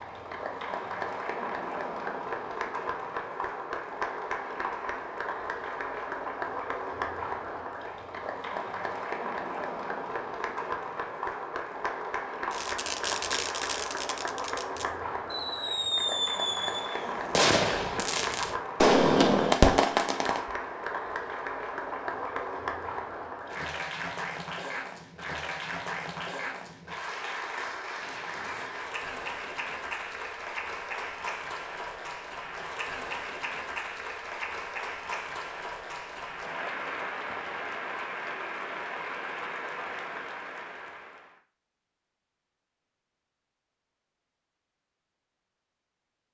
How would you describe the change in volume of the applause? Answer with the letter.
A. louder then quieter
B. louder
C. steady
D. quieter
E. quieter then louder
C.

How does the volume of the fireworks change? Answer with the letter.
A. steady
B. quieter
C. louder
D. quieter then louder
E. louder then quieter
C.